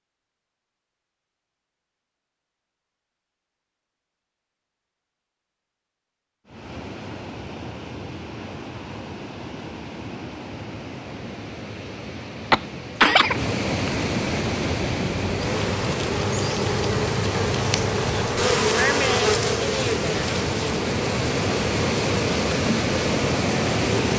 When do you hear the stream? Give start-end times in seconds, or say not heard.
6.5-24.1.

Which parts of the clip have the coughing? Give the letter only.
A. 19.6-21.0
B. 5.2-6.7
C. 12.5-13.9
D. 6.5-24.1
C.